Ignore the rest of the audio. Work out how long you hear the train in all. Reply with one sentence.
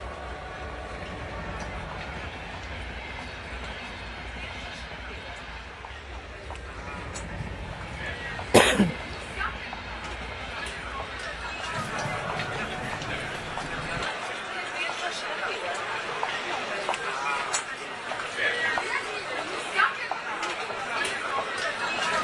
You can hear the train for 14 seconds altogether.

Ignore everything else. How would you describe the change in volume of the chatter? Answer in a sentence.
The volume of the chatter goes up.